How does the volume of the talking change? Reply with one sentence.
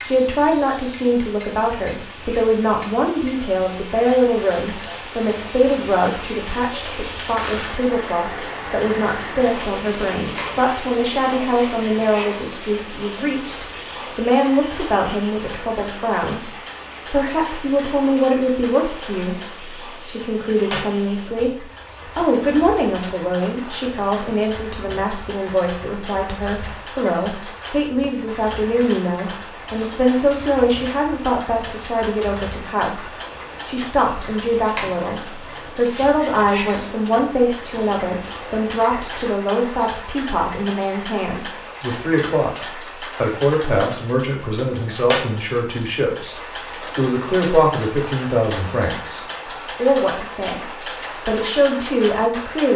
The volume of the talking stays about the same.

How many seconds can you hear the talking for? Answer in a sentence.
You can hear the talking for 52 seconds altogether.